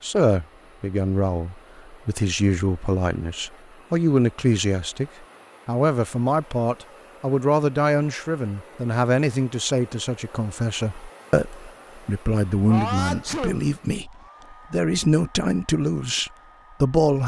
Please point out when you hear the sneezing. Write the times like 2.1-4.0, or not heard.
12.7-13.7.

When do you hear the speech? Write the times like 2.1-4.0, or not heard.
0.0-14.1, 14.7-17.2.